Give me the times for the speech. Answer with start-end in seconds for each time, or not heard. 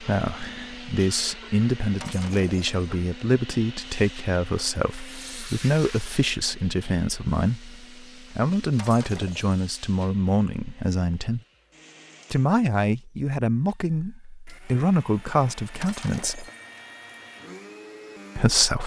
0.0-11.4, 12.3-16.4, 18.4-18.8.